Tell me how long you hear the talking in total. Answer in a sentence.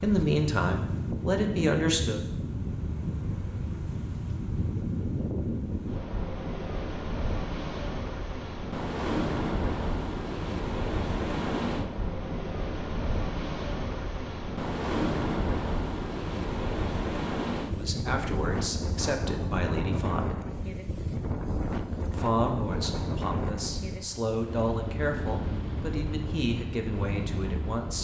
The talking can be heard for 11 seconds in total.